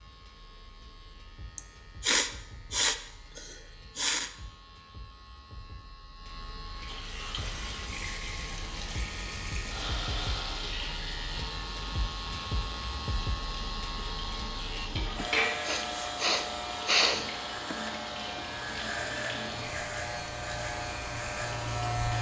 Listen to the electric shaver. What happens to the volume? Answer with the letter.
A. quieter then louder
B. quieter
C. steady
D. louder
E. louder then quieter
D.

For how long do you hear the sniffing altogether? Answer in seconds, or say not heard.
5 s.